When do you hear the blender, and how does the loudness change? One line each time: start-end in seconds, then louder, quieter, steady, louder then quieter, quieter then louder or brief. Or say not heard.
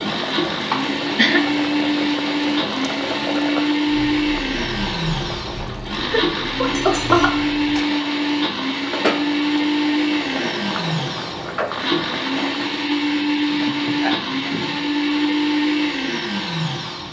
0.0-17.0 steady.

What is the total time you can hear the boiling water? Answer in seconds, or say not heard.
13 s.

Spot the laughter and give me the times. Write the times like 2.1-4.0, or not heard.
0.7-1.4, 6.1-7.5, 13.5-14.8.